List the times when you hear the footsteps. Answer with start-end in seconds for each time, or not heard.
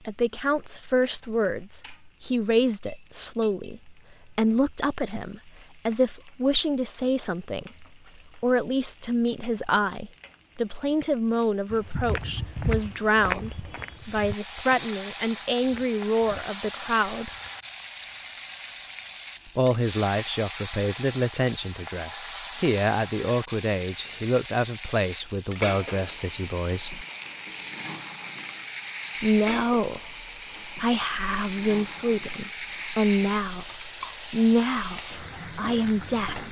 11.7-17.7.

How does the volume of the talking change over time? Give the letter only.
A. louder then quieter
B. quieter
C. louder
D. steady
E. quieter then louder
D.